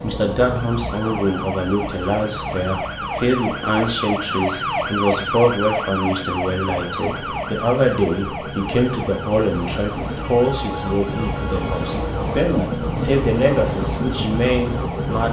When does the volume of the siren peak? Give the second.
5 s.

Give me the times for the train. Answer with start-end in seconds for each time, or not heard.
0.0-15.2.